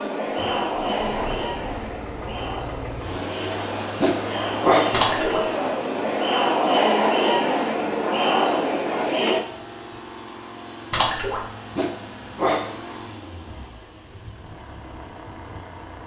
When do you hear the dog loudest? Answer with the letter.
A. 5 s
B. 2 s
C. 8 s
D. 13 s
A.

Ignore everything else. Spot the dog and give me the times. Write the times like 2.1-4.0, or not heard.
4.0-5.0, 11.8-12.8.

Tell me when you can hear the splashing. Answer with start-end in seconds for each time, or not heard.
4.9-5.5, 10.9-11.4.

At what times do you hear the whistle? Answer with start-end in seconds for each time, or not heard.
not heard.